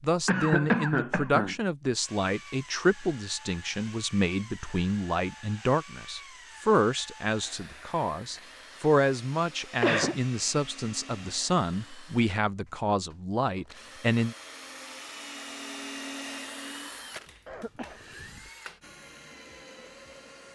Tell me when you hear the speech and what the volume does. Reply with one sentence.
The speech can be heard from 0.0 to 14.3 s, at a steady volume.